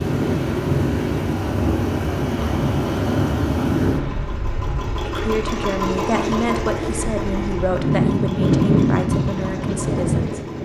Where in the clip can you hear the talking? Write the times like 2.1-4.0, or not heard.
5.0-10.3.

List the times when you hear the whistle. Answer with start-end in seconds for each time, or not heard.
not heard.